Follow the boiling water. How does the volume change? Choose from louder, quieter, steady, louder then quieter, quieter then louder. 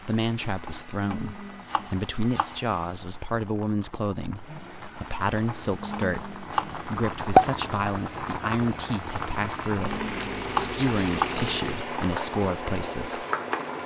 louder then quieter.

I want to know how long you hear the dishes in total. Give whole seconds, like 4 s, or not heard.
not heard.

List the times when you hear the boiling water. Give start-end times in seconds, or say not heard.
0.0-13.8.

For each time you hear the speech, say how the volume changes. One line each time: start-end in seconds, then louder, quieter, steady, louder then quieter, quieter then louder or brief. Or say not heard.
0.0-13.2 steady.